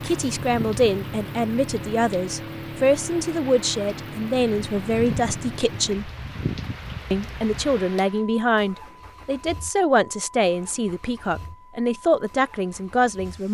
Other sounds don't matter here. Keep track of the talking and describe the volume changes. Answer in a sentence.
The loudness of the talking stays about the same.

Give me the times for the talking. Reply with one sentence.
The talking can be heard from 0.0 to 6.1 s and from 7.1 to 13.4 s.